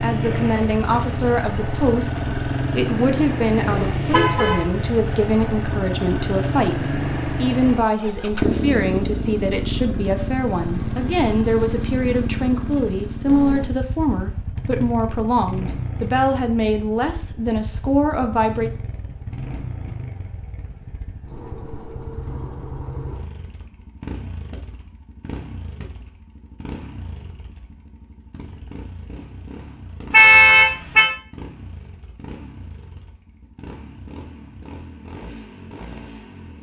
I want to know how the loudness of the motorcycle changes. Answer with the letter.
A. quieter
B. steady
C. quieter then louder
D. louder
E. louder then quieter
A.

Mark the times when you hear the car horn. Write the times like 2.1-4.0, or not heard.
3.6-4.6, 30.1-31.1.